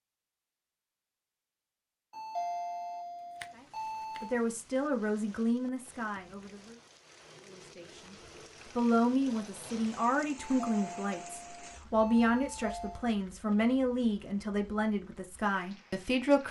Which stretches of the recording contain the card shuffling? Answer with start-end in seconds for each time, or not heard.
3.4-4.3.